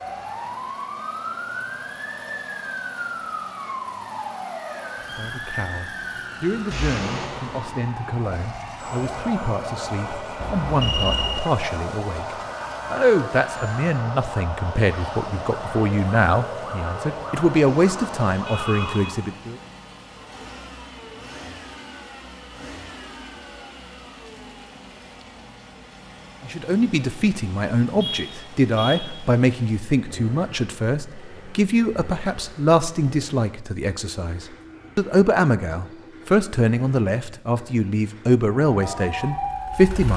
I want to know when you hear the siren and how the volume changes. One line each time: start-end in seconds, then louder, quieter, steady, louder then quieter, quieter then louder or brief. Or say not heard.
0.0-19.4 steady
38.6-39.9 brief.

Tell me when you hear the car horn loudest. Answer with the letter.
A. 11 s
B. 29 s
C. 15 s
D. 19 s
A.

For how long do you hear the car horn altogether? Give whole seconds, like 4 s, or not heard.
3 s.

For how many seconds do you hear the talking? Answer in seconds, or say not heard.
28 s.